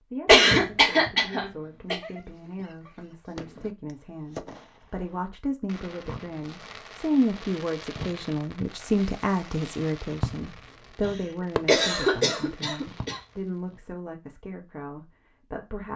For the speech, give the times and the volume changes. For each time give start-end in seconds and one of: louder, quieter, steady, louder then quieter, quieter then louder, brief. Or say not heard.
0.1-15.9 louder then quieter.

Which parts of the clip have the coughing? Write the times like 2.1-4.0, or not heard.
0.2-1.9, 11.7-13.2.